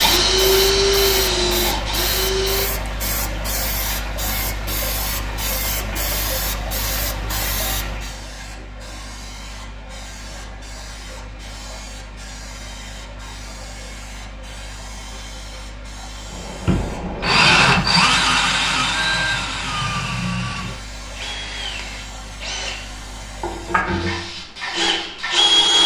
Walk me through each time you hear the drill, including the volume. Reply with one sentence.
You can hear the drill briefly from 0.0 to 2.6 s; and from 16.4 to 25.8 s, getting quieter then louder.